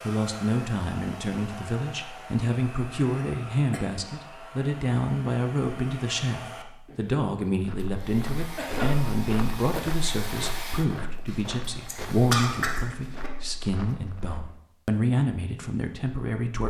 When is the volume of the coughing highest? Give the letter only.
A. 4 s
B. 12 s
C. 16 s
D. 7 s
B.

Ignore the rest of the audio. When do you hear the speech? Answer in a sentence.
You can hear the speech from 0.0 to 16.6 s.